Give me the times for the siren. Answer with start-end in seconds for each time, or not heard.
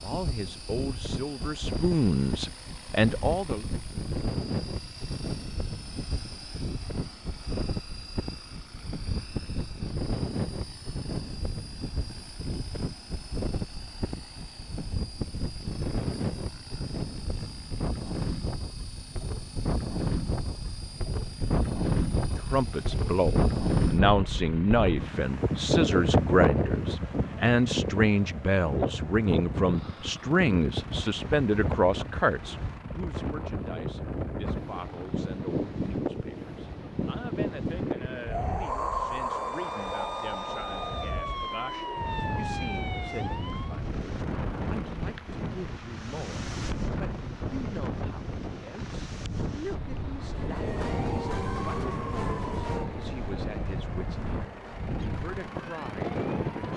39.3-43.9, 50.2-56.6.